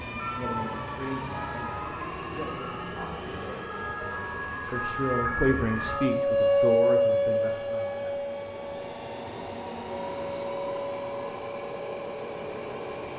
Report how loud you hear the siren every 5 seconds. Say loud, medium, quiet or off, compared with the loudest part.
medium, loud, medium.